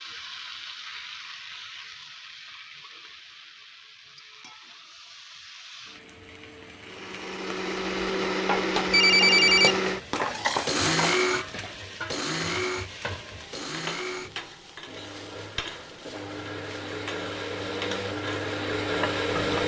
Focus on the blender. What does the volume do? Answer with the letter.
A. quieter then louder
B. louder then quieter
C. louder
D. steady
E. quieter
A.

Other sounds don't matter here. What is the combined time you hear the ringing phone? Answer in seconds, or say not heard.
2 s.